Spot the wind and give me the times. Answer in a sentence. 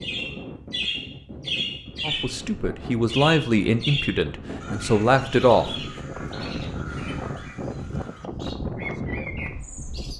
You can hear the wind from 0.0 to 10.1 s.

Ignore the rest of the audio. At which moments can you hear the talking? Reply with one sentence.
You can hear the talking from 2.0 to 5.8 s.